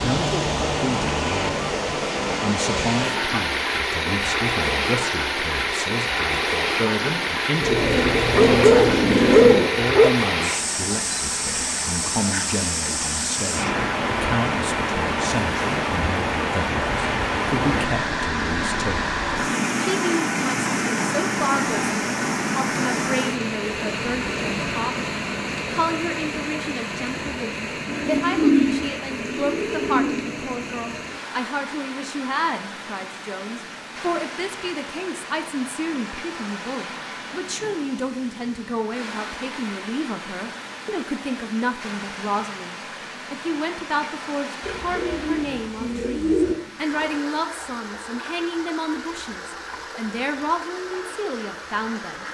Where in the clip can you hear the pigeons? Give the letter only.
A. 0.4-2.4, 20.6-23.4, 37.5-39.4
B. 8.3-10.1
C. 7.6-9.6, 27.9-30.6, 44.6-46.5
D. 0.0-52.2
C.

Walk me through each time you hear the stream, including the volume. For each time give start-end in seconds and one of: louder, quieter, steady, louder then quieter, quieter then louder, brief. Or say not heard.
0.0-52.2 quieter.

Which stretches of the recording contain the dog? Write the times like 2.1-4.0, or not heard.
8.3-10.1.